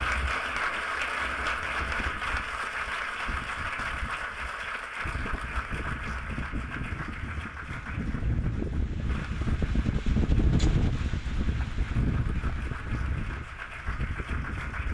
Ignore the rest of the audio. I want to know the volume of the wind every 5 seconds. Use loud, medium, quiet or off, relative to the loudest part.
quiet, loud, loud.